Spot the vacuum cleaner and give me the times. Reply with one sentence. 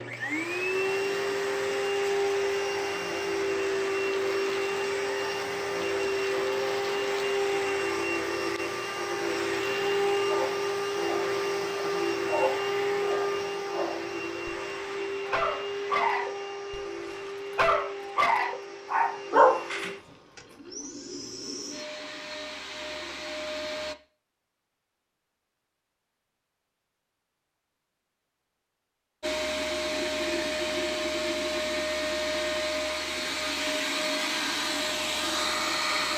The vacuum cleaner can be heard from 0.0 to 23.9 s and from 29.2 to 36.1 s.